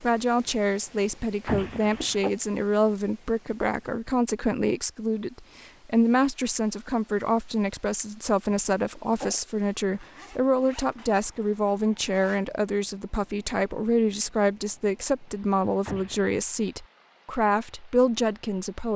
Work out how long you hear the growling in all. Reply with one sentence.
You can hear the growling for 2 seconds altogether.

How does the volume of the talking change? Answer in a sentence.
The volume of the talking stays about the same.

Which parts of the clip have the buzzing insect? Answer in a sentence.
You can't hear the buzzing insect here.